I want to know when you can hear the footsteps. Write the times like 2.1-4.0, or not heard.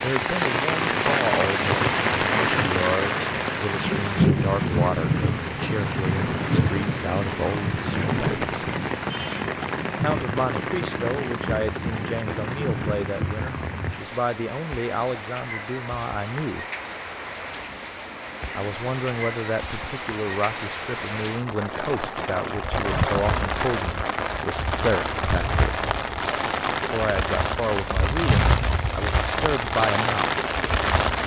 not heard.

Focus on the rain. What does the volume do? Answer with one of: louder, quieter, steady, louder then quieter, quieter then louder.
quieter then louder.